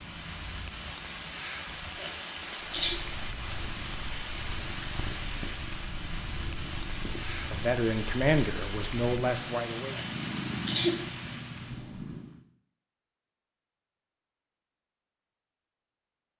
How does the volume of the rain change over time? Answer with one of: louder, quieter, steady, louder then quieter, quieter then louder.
steady.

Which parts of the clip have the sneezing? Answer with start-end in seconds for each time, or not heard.
1.9-3.0, 9.8-11.0.